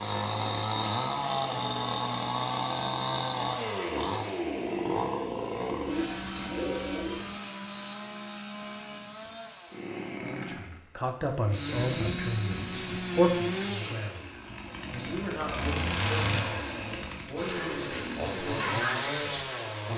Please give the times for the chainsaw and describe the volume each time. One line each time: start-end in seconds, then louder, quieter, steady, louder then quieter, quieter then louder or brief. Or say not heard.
0.0-19.9 quieter then louder.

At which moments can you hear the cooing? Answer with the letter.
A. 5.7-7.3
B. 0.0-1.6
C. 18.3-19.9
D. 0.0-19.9
A.